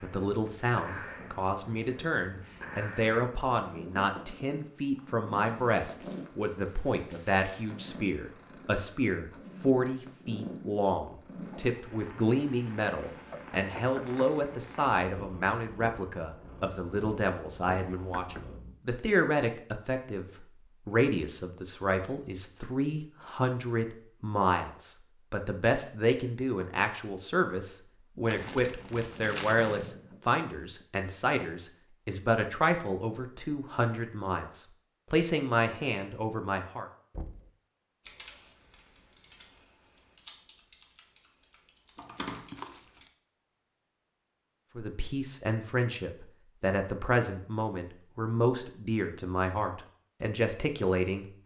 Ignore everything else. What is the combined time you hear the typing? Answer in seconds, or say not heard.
5 s.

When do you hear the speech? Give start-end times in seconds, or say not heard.
0.0-36.9, 44.8-51.4.